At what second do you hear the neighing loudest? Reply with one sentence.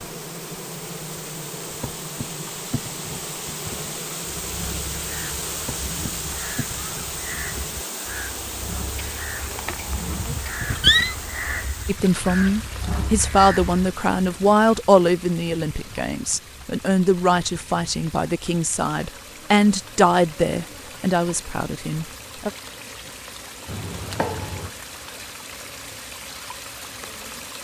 The loudest moment of the neighing is at 11 seconds.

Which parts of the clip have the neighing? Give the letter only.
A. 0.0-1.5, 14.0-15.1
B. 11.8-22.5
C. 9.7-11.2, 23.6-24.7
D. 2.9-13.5
C.